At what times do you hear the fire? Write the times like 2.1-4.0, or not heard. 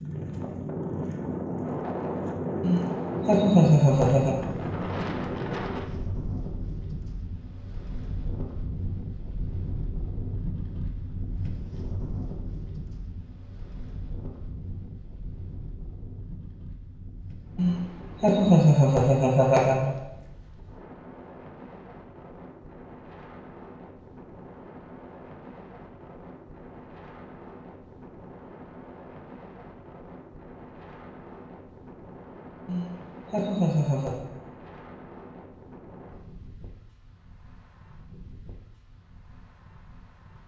not heard.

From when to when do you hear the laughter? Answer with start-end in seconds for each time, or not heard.
2.6-4.3, 17.6-19.9, 32.6-34.2.